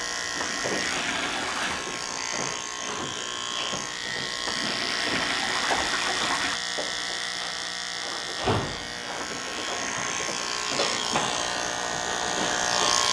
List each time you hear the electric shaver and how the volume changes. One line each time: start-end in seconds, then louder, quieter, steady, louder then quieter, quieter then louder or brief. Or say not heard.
0.0-13.0 steady.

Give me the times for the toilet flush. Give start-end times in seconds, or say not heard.
0.4-1.9, 4.5-6.6, 9.2-10.3.